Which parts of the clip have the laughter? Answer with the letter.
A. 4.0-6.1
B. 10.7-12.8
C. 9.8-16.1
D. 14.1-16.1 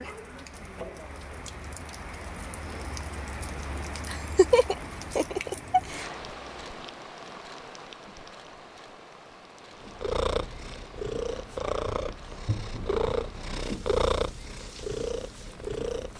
A.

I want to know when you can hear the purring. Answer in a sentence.
You can hear the purring from 9.8 to 16.1 s.